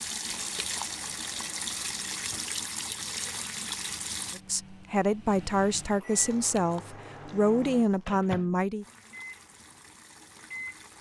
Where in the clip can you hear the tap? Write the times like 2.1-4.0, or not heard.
0.0-4.4, 8.8-10.9.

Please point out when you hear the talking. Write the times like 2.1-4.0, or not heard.
4.3-8.8.